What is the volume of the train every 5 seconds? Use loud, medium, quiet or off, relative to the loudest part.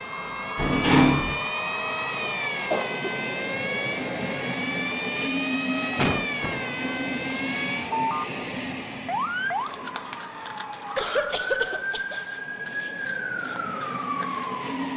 loud, loud, medium.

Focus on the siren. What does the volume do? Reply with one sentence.
The volume of the siren stays about the same.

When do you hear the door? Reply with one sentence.
The door can be heard from 0.6 to 1.4 s.